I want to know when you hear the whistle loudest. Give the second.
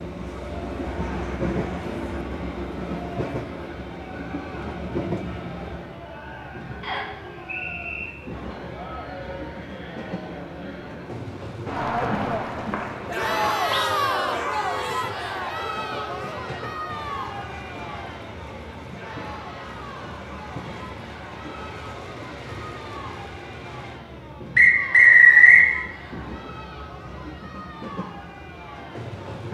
25 s.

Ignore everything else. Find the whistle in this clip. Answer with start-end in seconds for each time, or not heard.
6.8-8.1, 12.0-13.8, 24.6-25.7.